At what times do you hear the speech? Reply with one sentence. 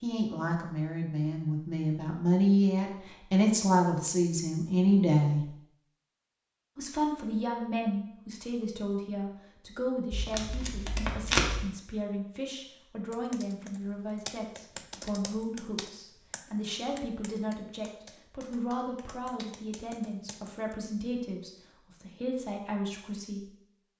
You can hear the speech from 0.0 to 5.5 s and from 6.8 to 23.4 s.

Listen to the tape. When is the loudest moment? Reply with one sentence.
The volume of the tape peaks at 11 seconds.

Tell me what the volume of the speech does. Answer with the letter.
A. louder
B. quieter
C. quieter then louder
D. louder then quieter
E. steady
B.